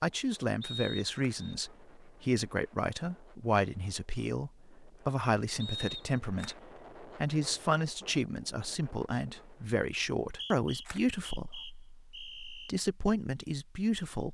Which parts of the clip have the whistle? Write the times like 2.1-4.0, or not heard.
0.6-1.6, 5.6-6.5, 10.1-12.7.